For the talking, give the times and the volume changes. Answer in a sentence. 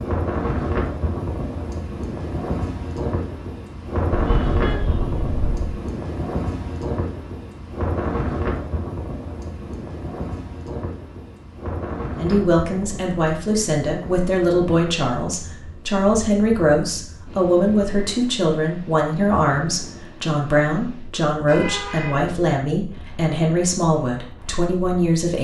You can hear the talking from 12.2 to 25.3 s, at a steady volume.